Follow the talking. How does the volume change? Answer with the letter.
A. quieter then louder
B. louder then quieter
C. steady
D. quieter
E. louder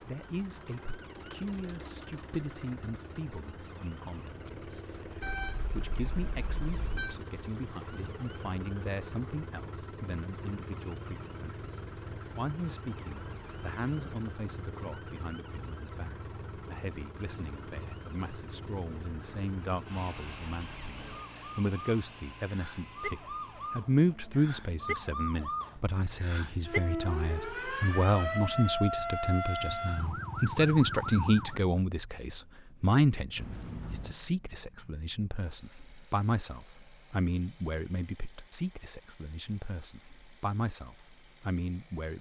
B.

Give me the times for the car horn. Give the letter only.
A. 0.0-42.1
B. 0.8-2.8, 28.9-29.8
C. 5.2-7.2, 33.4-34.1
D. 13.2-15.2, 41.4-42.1
C.